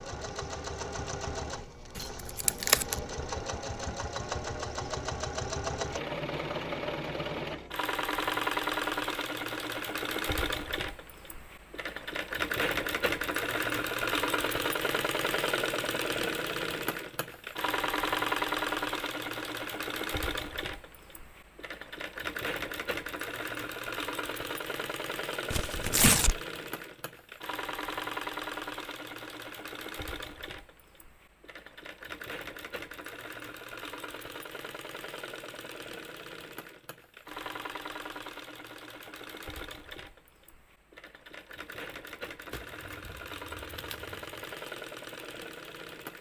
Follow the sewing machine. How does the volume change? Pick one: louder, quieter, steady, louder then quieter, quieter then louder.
quieter.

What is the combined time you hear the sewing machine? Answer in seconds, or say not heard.
46 s.